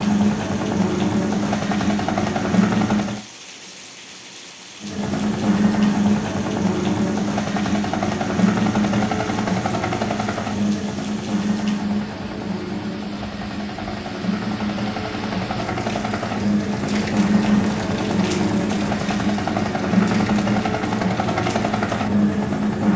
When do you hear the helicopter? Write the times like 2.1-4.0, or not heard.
0.0-3.2, 4.8-22.9.